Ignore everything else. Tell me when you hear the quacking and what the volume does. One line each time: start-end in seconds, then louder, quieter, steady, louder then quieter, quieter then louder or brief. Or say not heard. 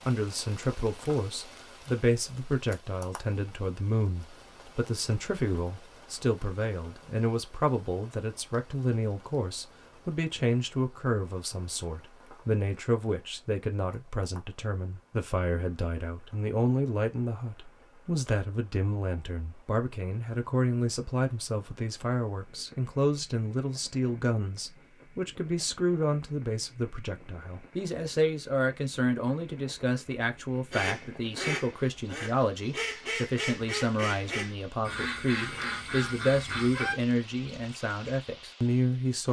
30.7-37.0 steady.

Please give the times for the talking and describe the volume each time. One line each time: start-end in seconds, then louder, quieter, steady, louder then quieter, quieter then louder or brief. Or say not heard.
0.1-39.2 steady.